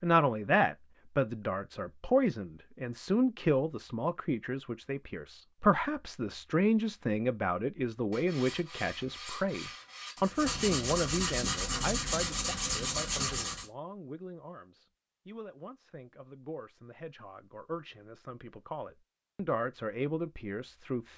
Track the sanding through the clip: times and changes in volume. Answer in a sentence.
You can hear the sanding from 8.1 to 13.7 s, getting louder.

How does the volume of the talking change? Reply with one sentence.
The loudness of the talking goes down, then up.